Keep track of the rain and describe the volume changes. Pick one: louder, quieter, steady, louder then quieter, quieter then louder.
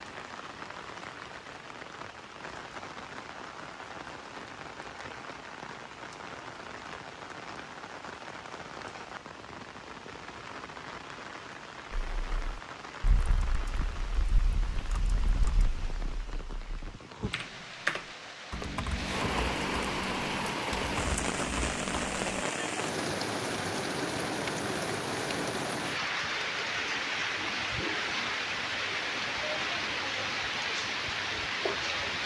louder.